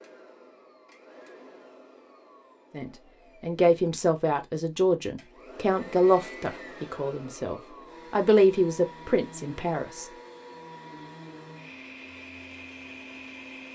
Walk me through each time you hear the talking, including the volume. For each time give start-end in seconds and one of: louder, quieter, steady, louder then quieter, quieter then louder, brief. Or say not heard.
2.7-10.2 steady.